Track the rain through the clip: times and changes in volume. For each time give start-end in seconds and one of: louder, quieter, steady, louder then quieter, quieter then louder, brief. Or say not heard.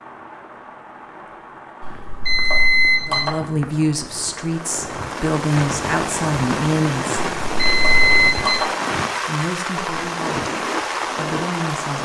0.0-12.0 louder.